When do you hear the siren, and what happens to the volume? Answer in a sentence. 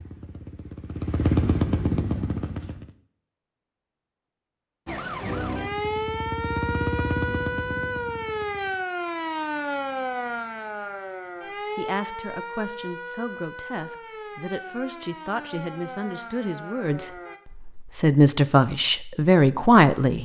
You can hear the siren from 4.8 to 17.4 s, getting quieter.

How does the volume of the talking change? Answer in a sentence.
The loudness of the talking goes up.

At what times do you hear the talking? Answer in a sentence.
You can hear the talking from 11.8 to 20.2 s.